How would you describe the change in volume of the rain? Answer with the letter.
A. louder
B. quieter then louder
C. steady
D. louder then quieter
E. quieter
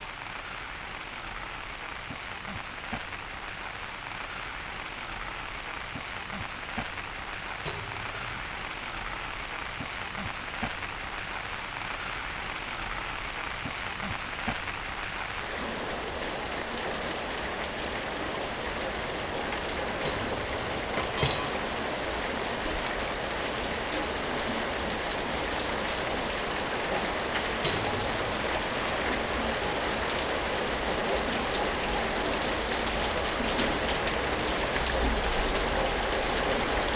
A.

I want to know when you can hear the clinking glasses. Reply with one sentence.
You can hear the clinking glasses from 7.7 to 8.4 s, from 20.1 to 21.6 s and from 27.6 to 28.2 s.